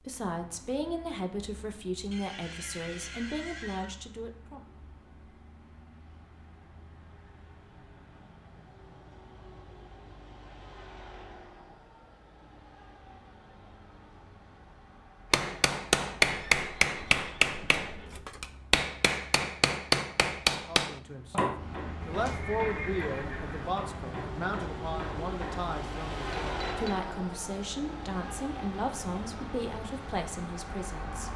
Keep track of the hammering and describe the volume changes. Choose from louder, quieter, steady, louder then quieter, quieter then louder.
quieter.